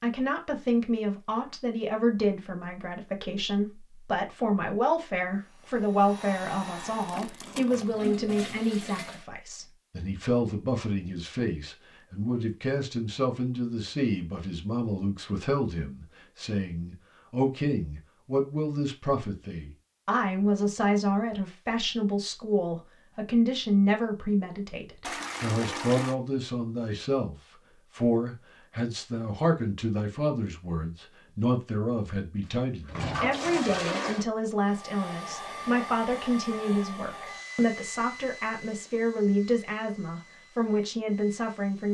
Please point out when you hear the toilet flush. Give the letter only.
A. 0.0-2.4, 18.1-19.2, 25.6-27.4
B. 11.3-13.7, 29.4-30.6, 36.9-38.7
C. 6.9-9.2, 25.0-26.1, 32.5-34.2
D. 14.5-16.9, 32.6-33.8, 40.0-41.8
C.